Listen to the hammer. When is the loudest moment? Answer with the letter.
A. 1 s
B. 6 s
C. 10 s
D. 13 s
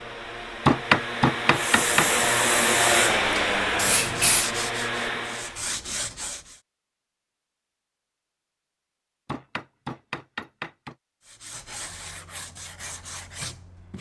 A.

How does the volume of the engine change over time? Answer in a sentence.
The volume of the engine goes up, then down.